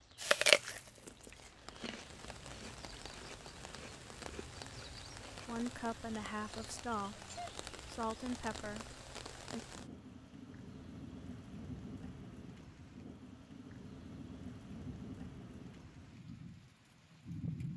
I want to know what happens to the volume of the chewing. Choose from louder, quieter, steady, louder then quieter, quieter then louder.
quieter.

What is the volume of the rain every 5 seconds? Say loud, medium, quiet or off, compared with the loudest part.
medium, loud, loud, loud.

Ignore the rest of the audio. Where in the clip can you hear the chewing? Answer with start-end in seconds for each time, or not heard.
0.1-5.7.